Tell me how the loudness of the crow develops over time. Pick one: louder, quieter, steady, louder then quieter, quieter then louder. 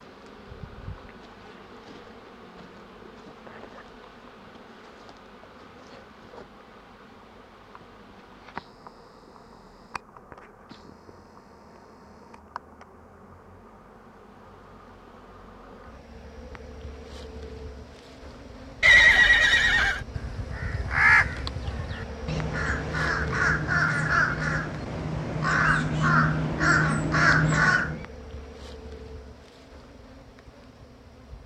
quieter then louder.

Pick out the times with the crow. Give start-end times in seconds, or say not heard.
19.6-28.1.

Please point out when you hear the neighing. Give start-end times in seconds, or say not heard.
18.8-20.0.